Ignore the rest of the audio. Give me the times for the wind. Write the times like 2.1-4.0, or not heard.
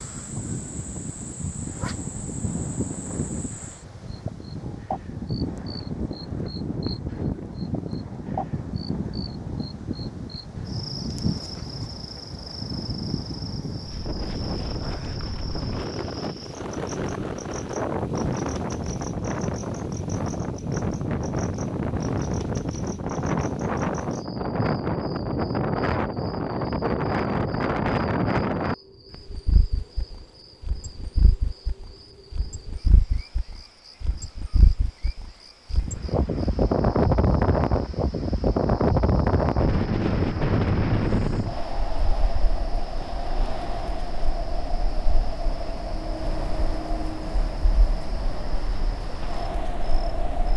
0.0-50.5.